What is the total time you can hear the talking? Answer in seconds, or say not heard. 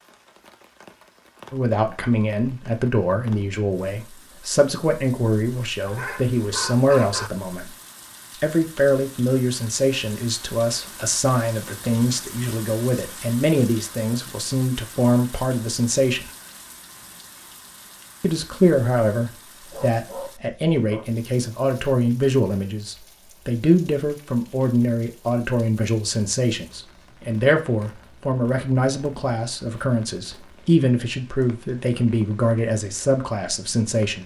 30 s.